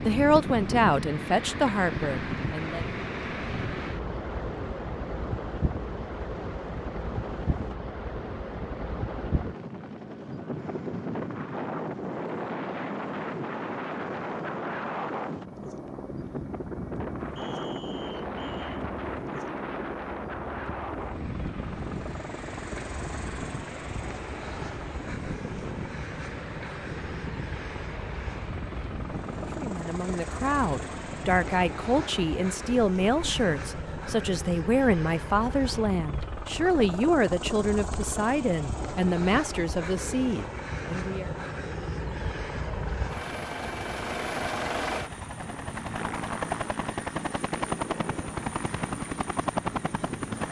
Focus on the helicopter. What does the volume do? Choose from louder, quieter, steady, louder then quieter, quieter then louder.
louder.